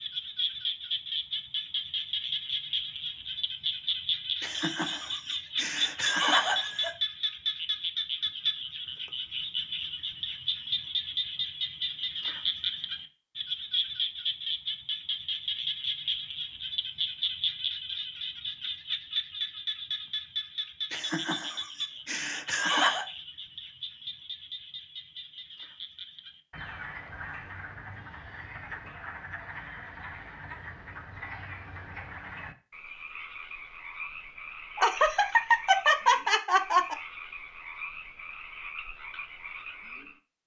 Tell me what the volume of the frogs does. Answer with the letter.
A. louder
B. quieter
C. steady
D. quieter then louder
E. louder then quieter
B.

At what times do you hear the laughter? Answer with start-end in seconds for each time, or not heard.
4.4-6.9, 20.9-23.1, 34.8-37.0.